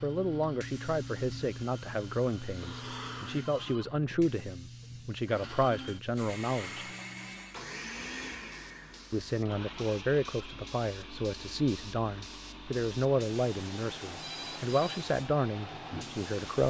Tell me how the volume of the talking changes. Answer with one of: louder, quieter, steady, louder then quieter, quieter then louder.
steady.